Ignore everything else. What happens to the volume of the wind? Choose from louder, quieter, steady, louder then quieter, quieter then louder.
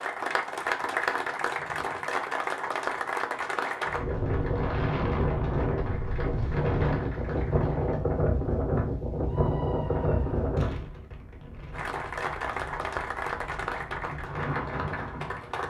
quieter then louder.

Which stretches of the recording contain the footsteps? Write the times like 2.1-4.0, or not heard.
not heard.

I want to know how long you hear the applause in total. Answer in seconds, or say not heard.
12 s.